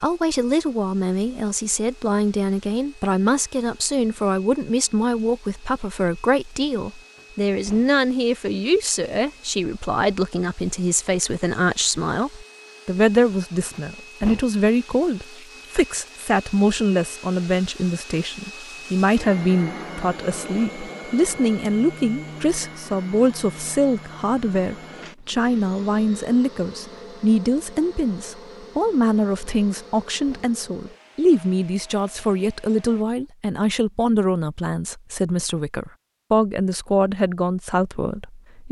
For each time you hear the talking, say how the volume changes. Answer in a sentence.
You can hear the talking from 0.0 to 38.6 s, at a steady volume.